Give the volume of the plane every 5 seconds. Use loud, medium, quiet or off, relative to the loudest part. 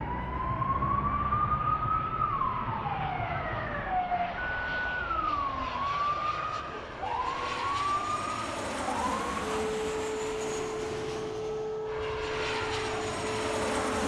medium, loud, loud.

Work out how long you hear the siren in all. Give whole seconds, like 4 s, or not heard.
14 s.